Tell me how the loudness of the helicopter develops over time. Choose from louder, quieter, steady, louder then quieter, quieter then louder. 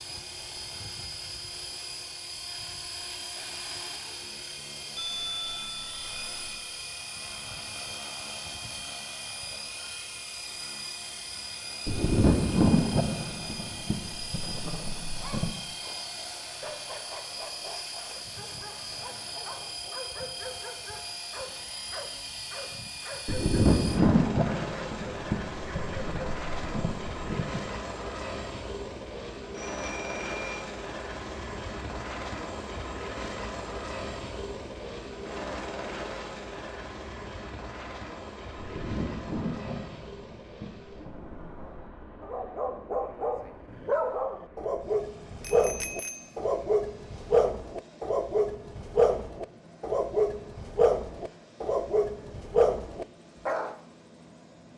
quieter.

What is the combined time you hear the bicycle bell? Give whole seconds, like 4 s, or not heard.
4 s.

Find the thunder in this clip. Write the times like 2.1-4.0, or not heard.
11.8-15.6, 23.2-27.6, 38.5-41.9.